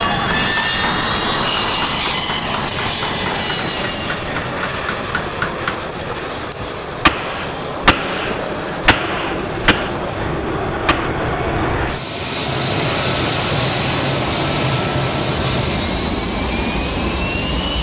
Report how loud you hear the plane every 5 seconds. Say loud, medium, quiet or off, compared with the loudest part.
loud, medium, loud, loud.